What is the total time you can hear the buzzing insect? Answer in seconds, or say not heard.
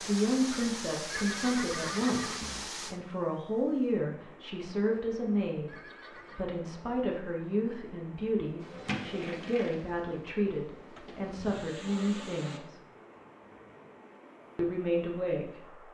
4 s.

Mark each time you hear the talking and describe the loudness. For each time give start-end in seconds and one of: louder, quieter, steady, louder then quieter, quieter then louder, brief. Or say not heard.
0.0-12.8 steady
14.6-15.8 brief.